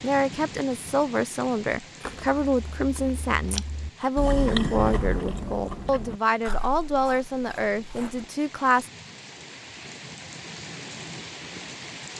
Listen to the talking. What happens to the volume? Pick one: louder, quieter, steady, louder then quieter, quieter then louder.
steady.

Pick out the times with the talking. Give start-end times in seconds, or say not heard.
0.0-8.9.